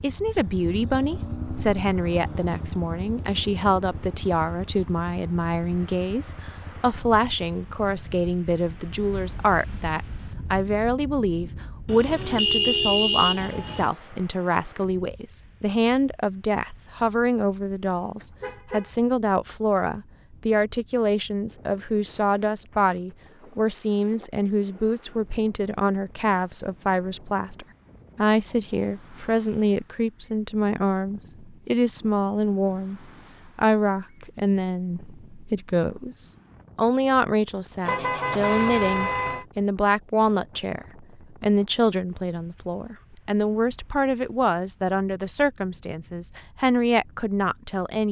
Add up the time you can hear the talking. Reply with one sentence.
The talking can be heard for 48 seconds in total.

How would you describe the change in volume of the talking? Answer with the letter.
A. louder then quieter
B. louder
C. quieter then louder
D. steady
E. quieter
D.